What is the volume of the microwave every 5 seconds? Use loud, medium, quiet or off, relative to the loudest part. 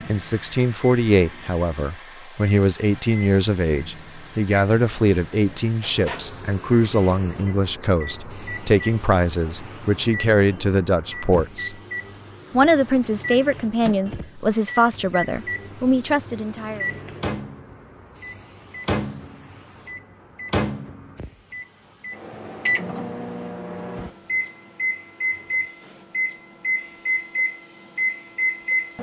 quiet, quiet, medium, medium, loud, loud.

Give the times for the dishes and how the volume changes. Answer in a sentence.
You can't hear the dishes here.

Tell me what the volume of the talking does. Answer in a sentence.
The loudness of the talking stays about the same.